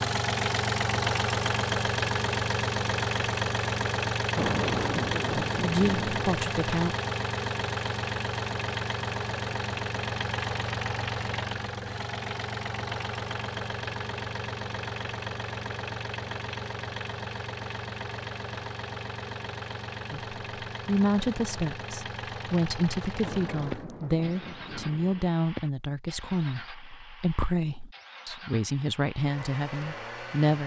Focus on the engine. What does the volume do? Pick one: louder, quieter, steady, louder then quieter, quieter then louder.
quieter.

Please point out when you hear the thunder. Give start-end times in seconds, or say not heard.
4.3-6.3, 23.2-25.2.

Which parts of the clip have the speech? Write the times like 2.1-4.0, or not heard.
5.5-7.0, 20.1-30.6.